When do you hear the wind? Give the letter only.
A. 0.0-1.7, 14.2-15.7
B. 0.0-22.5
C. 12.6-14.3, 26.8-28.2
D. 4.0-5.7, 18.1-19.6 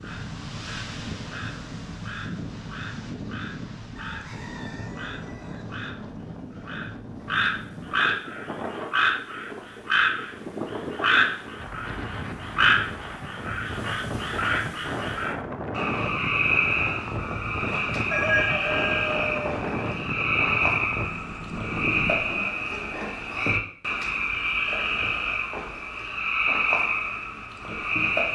B.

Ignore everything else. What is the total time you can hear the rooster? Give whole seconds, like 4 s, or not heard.
3 s.